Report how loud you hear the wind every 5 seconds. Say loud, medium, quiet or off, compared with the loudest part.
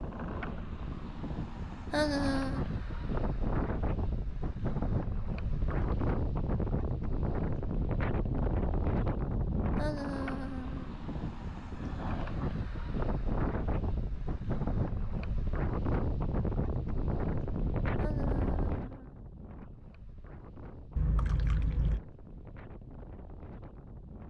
loud, loud, loud, loud, quiet.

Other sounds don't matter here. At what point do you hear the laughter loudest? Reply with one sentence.
The loudest moment of the laughter is at 2 seconds.